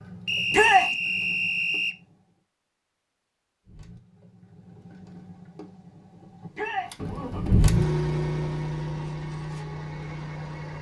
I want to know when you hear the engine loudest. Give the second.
8 s.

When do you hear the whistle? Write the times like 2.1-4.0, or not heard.
0.2-1.9.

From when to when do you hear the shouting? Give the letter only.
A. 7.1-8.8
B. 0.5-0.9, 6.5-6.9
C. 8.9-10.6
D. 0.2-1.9
B.